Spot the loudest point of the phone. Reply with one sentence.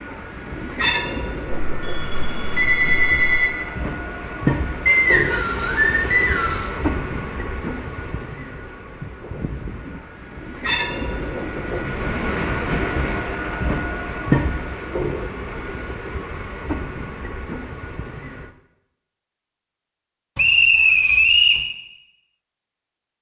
The volume of the phone peaks at 3 seconds.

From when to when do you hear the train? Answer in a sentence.
The train can be heard from 0.0 to 18.6 s.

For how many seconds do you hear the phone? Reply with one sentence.
You can hear the phone for 2 seconds altogether.